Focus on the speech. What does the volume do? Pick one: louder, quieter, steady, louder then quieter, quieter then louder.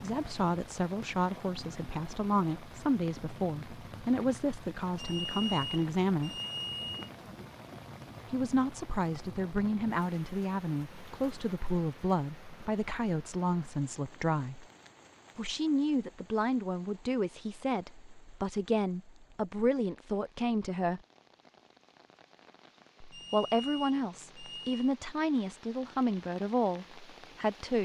steady.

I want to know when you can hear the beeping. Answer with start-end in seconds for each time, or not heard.
5.0-7.1, 23.1-24.9.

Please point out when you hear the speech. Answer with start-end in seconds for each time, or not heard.
0.0-6.3, 8.3-14.7, 15.3-21.0, 23.1-27.7.